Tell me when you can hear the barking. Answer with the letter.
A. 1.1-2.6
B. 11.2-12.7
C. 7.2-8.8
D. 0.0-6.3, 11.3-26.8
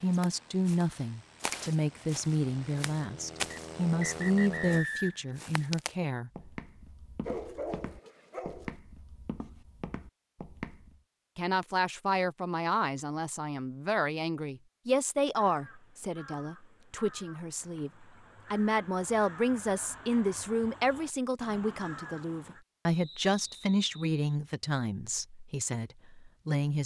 C.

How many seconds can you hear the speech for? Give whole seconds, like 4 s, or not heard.
22 s.